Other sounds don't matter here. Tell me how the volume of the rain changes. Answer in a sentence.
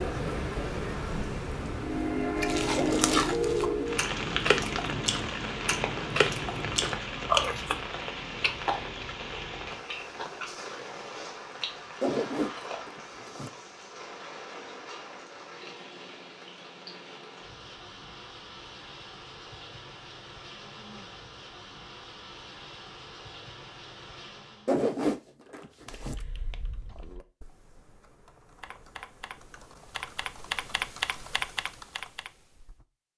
The loudness of the rain goes down.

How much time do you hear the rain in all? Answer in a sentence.
The rain can be heard for 25 seconds in total.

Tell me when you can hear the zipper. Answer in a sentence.
The zipper can be heard from 2.8 to 3.2 s, from 12.0 to 13.5 s and from 24.6 to 26.1 s.